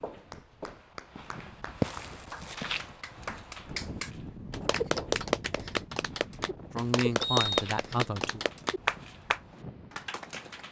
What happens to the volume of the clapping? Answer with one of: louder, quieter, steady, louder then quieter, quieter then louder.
louder.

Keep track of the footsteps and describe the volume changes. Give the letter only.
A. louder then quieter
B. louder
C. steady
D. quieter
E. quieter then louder
D.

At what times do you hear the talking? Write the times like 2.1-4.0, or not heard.
6.7-8.4.